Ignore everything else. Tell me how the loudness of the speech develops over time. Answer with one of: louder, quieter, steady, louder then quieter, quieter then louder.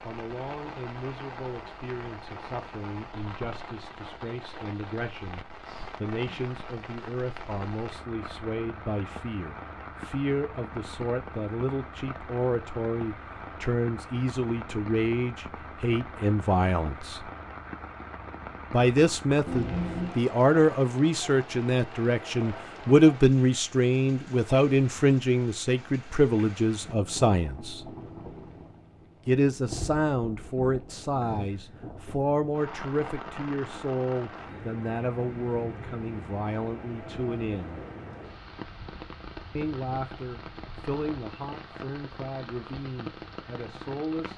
louder then quieter.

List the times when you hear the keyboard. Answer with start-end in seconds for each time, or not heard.
not heard.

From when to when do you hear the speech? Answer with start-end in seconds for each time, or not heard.
0.0-17.3, 18.7-27.9, 29.2-37.8, 39.5-44.3.